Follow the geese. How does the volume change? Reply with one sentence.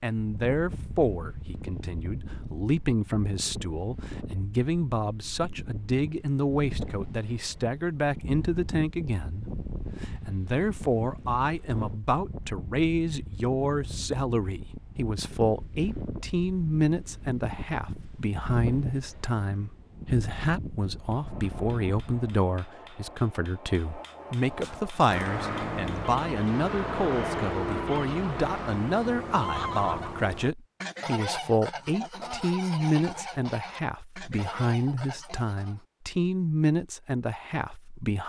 The volume of the geese goes down.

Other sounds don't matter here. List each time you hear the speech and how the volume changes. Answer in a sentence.
You can hear the speech from 0.0 to 38.2 s, at a steady volume.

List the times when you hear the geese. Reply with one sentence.
You can hear the geese from 24.5 to 35.9 s.